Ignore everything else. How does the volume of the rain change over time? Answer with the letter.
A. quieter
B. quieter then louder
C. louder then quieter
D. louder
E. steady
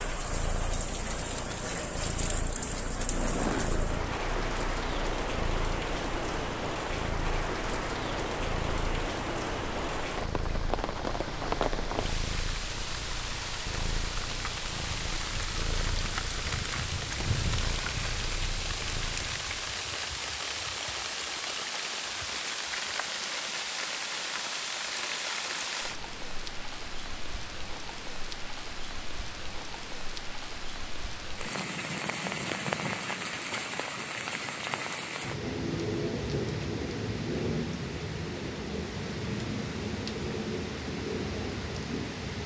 E.